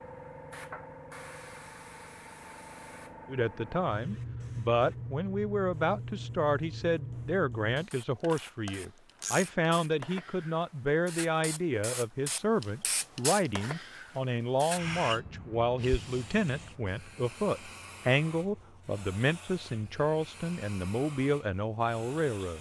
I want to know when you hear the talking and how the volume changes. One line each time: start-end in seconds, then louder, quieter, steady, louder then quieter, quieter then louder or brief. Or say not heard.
3.2-22.5 steady.